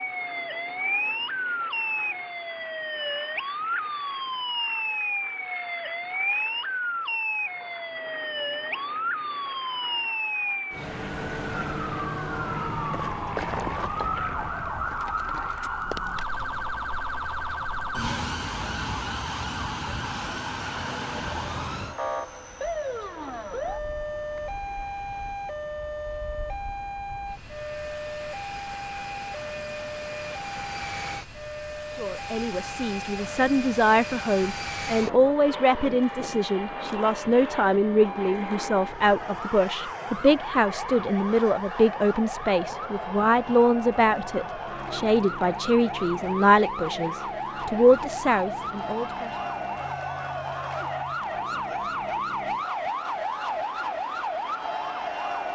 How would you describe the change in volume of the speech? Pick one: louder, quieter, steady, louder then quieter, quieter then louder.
steady.